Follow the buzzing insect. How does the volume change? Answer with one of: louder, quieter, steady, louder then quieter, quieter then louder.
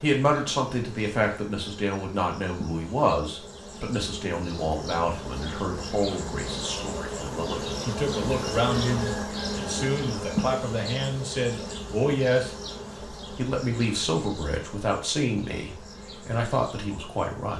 louder then quieter.